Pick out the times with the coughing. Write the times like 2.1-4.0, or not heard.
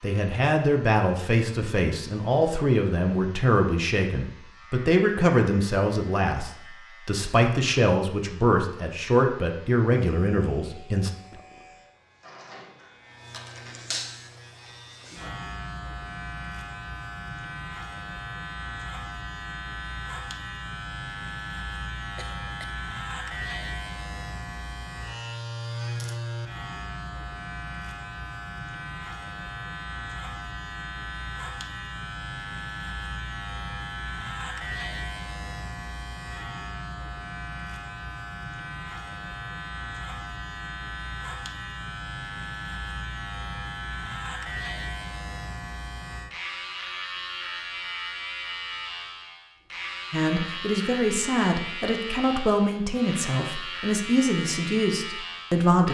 22.1-22.8.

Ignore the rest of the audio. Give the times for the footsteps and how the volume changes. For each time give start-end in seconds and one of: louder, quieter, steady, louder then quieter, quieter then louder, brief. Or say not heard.
not heard.